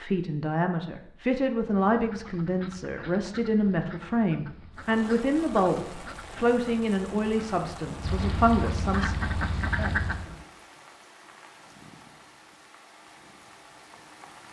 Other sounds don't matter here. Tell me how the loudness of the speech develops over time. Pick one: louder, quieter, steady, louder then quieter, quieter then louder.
steady.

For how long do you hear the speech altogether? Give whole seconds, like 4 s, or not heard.
9 s.